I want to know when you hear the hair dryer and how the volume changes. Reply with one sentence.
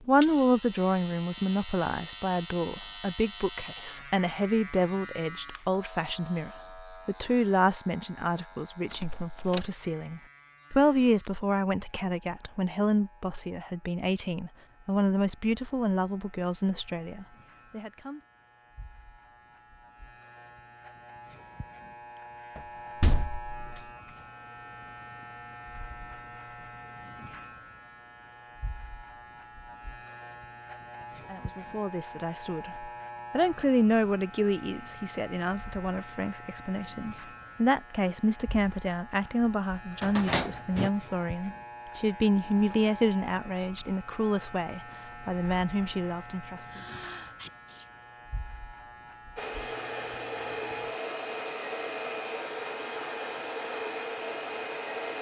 You can hear the hair dryer from 49.4 to 55.1 s, at a steady volume.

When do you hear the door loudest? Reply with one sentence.
The loudest moment of the door is at 40 seconds.